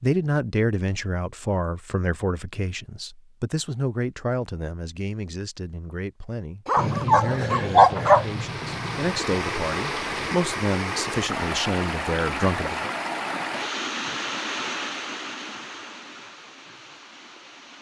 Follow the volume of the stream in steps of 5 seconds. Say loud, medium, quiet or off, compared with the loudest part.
off, loud, loud, medium.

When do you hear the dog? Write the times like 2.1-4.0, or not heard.
6.7-8.2.